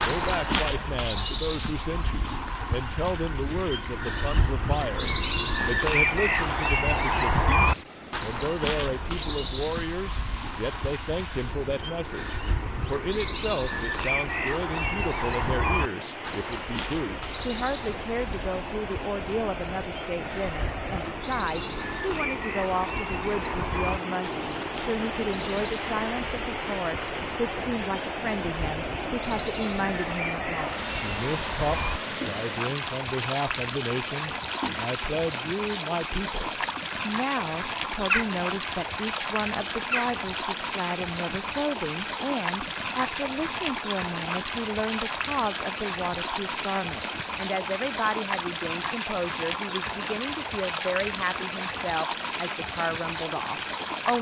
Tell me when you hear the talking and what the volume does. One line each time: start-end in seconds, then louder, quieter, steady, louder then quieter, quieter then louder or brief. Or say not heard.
0.0-54.1 steady.